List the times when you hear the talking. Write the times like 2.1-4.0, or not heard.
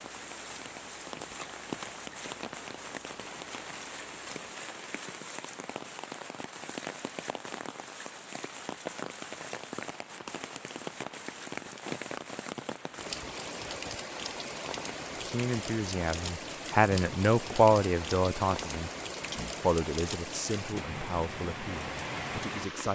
15.2-22.9.